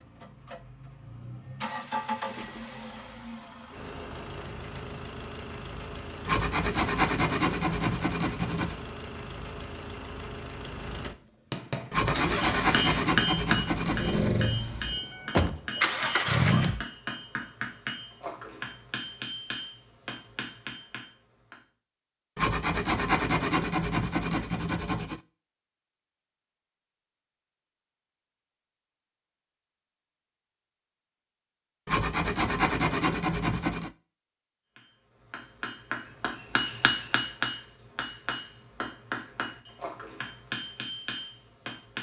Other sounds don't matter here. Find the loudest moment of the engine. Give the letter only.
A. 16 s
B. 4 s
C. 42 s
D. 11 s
A.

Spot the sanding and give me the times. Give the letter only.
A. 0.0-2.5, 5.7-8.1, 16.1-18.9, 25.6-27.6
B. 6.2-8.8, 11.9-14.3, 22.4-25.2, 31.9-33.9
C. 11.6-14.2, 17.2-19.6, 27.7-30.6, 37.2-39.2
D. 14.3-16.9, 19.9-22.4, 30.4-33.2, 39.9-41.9
B.